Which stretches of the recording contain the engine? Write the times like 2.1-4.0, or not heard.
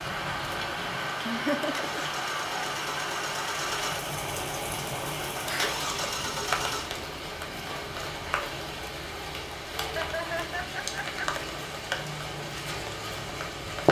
0.0-6.9.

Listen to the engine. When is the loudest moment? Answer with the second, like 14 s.
6 s.